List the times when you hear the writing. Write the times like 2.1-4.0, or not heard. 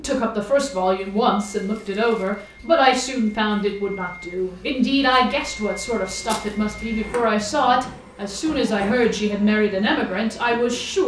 not heard.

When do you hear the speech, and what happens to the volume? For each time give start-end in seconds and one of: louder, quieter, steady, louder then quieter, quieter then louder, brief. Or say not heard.
0.0-11.0 steady.